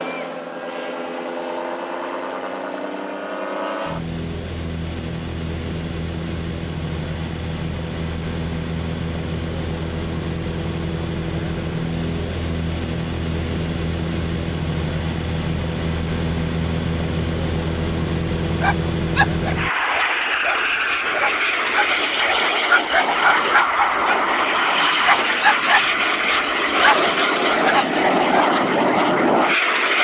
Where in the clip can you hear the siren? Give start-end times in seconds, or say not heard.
not heard.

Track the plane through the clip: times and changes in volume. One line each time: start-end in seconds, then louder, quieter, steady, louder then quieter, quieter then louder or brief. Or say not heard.
0.0-29.9 louder.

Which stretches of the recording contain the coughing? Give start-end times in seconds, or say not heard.
not heard.